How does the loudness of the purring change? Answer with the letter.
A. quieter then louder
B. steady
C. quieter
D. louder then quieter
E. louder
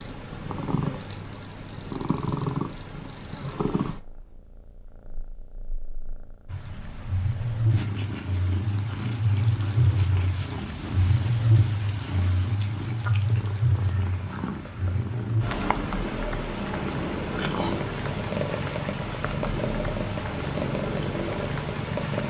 A.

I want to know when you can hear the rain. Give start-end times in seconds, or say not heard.
6.5-22.2.